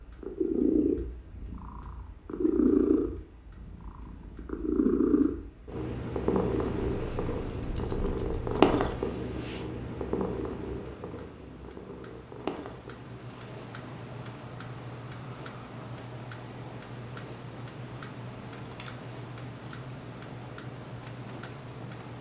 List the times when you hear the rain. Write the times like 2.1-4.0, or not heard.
not heard.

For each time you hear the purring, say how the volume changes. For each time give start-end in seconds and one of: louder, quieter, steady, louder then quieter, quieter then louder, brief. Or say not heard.
0.0-22.1 quieter.